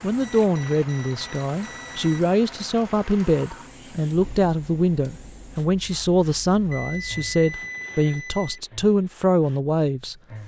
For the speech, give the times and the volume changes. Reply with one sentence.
The speech can be heard from 0.0 to 10.2 s, at a steady volume.